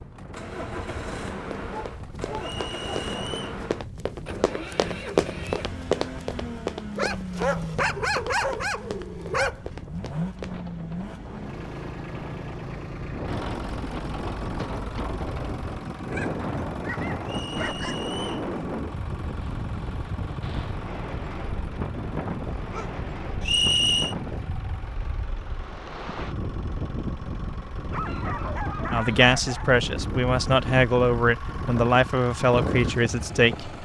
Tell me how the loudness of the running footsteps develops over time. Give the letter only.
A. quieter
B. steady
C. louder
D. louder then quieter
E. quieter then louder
D.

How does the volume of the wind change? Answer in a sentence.
The volume of the wind goes up.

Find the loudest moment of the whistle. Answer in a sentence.
The loudest moment of the whistle is at 24 seconds.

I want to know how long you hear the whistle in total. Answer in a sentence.
The whistle can be heard for 3 seconds in total.